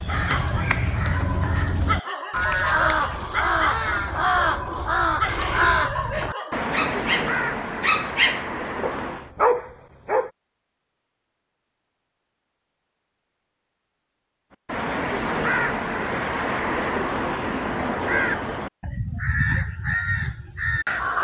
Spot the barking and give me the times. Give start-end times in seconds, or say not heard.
0.1-10.3.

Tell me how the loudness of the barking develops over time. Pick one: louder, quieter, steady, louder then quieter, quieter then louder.
louder.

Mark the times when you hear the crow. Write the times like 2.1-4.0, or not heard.
0.0-9.3, 14.7-21.1.